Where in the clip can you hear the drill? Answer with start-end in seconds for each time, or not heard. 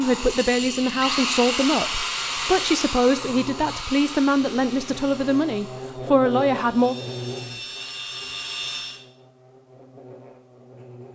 0.0-9.0.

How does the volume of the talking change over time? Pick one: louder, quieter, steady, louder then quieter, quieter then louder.
steady.